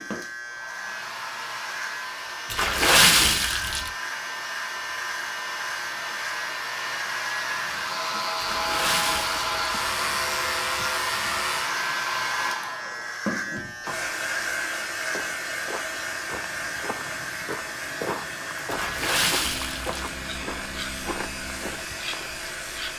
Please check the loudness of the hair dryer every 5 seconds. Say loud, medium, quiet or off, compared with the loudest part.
medium, loud, loud, medium, medium.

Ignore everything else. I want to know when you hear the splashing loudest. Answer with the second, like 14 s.
3 s.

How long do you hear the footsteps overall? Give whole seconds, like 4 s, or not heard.
7 s.